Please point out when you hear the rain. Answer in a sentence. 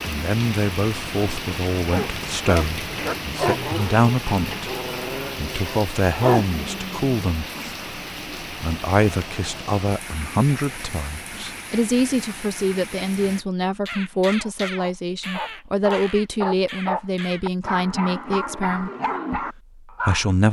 You can hear the rain from 0.0 to 13.4 s.